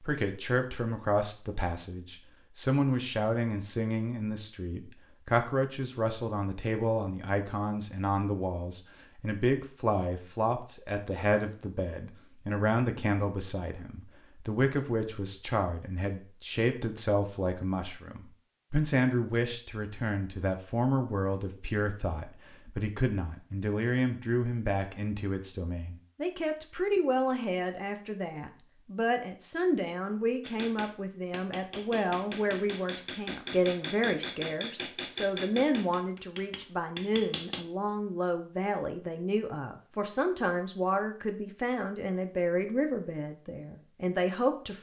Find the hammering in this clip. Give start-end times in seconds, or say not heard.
30.4-37.6.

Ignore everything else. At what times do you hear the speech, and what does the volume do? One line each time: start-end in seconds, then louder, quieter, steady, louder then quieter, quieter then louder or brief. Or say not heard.
0.0-44.7 steady.